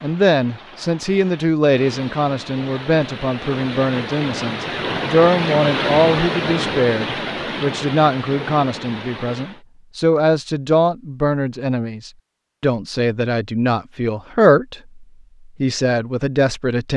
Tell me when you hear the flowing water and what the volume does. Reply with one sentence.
The flowing water can be heard from 0.0 to 9.7 s, getting louder then quieter.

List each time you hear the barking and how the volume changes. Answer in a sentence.
You can't hear the barking here.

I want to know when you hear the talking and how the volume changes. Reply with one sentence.
The talking can be heard from 0.0 to 16.9 s, at a steady volume.